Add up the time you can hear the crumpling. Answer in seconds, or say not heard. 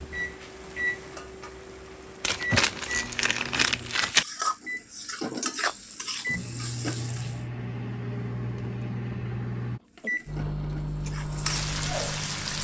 2 s.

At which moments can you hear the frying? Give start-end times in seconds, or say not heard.
0.0-7.4, 9.9-12.5.